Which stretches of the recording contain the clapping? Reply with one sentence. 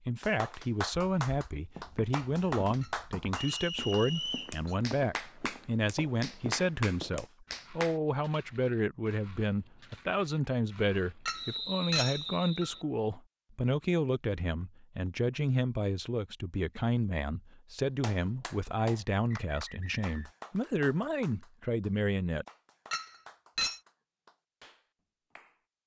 The clapping can be heard from 0.2 to 8.0 s and from 18.0 to 25.6 s.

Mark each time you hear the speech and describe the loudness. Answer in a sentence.
You can hear the speech from 0.1 to 22.4 s, at a steady volume.